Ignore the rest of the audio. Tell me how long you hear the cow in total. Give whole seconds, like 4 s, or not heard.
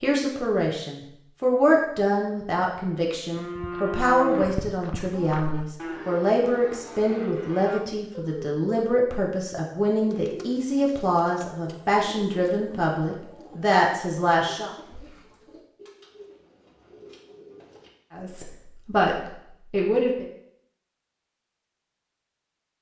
6 s.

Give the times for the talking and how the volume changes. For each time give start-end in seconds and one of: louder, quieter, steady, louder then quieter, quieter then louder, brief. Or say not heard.
0.0-14.7 steady
18.1-20.2 brief.